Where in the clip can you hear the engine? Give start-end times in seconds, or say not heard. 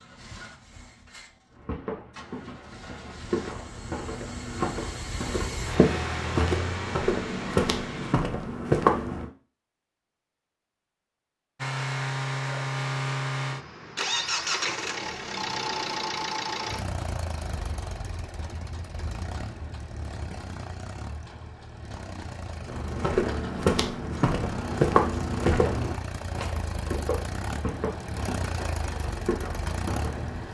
0.0-8.2, 11.6-30.5.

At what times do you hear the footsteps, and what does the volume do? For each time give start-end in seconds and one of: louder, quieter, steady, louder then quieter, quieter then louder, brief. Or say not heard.
1.5-9.2 louder
22.6-30.4 quieter.